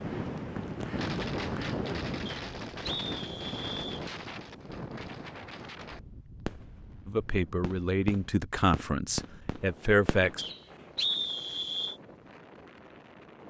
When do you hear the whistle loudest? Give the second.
11 s.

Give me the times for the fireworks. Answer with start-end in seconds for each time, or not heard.
0.9-10.6.